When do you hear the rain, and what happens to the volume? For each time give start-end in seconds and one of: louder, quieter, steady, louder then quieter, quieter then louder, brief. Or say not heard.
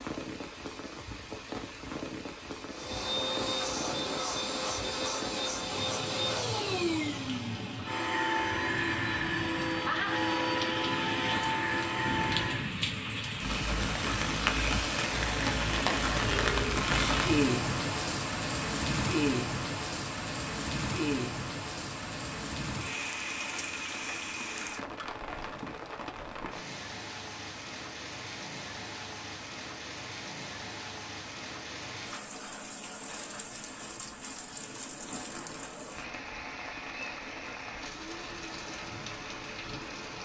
0.0-40.2 louder then quieter.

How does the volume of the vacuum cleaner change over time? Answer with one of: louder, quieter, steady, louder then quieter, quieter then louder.
steady.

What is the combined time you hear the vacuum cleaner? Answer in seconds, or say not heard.
10 s.